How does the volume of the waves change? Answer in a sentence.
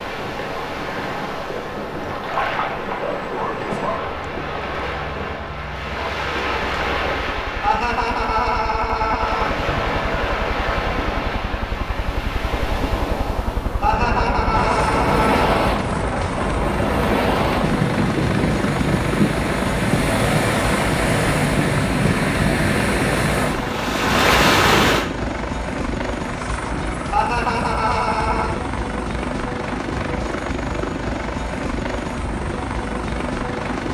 The volume of the waves goes up.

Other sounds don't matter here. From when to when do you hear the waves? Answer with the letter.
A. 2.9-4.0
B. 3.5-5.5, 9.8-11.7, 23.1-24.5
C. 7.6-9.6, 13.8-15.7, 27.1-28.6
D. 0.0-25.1
D.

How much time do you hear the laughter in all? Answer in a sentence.
The laughter can be heard for 5 seconds in total.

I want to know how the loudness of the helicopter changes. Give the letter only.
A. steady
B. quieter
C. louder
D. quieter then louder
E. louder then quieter
C.